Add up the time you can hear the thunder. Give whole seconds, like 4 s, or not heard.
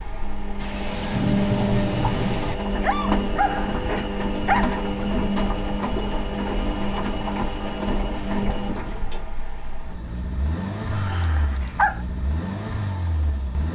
2 s.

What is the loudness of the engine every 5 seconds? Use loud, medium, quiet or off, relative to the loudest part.
loud, loud, medium.